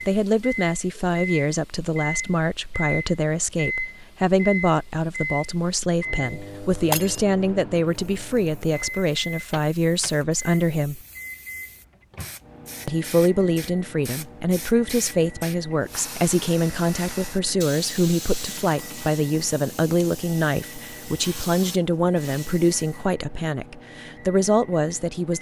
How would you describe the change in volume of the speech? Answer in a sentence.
The loudness of the speech stays about the same.